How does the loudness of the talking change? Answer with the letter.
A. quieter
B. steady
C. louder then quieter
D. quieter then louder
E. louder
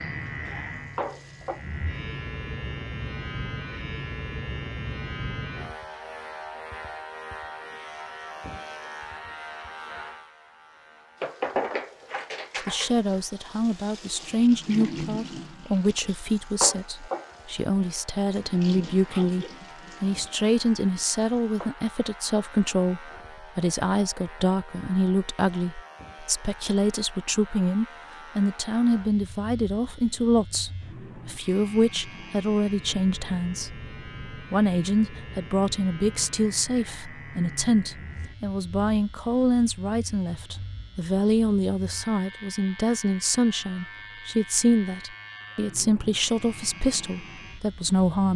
B.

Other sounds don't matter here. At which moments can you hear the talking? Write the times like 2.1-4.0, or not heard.
12.7-48.3.